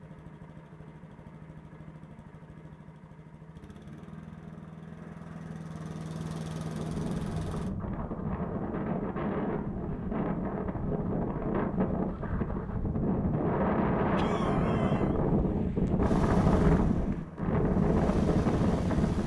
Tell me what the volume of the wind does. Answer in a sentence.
The loudness of the wind goes up.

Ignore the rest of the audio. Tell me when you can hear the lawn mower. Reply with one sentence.
You can hear the lawn mower from 0.0 to 7.8 s and from 16.0 to 19.2 s.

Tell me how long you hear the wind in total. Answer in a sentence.
You can hear the wind for 13 seconds altogether.